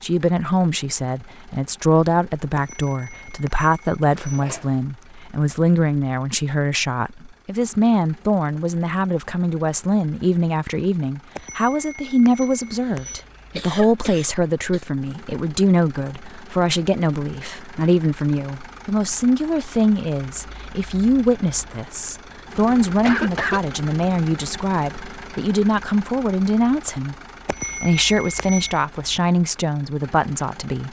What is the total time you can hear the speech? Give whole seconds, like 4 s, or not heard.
30 s.